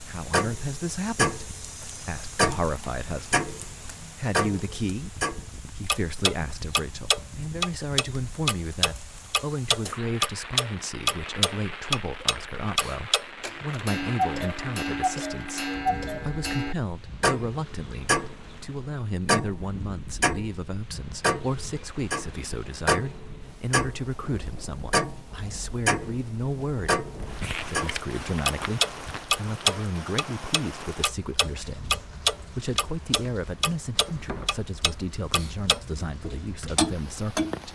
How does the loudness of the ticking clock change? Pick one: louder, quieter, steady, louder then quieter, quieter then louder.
steady.